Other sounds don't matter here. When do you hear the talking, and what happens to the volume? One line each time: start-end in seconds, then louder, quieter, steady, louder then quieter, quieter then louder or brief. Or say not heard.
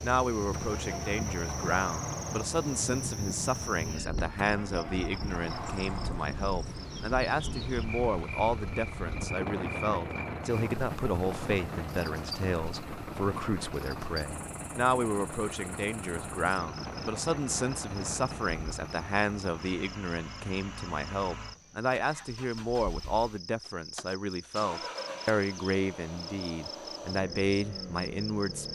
0.0-28.7 steady.